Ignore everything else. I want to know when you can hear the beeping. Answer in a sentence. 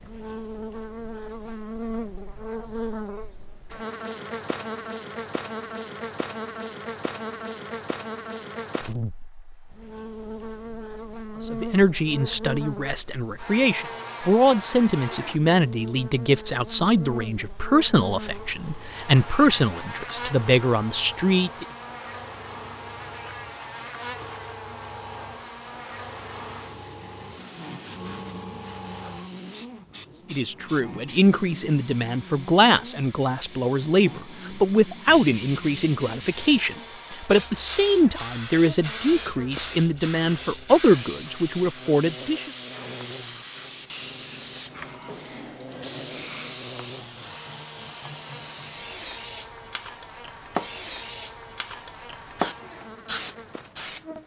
You can't hear the beeping here.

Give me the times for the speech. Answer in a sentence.
The speech can be heard from 11.4 to 21.6 s and from 30.3 to 42.5 s.